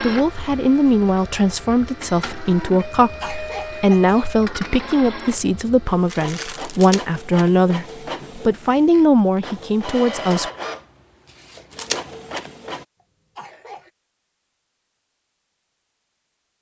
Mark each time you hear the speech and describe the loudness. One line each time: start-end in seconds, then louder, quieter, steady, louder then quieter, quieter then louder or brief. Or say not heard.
0.0-10.5 steady.